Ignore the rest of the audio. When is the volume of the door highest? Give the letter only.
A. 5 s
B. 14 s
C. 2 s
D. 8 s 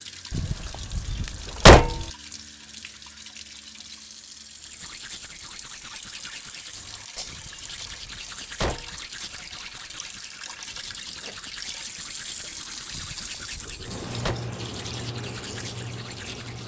C.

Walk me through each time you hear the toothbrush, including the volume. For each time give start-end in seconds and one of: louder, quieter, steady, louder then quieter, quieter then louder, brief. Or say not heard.
4.5-16.6 steady.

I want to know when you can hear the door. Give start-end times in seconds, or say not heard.
0.3-2.0, 7.2-9.0, 12.9-14.3.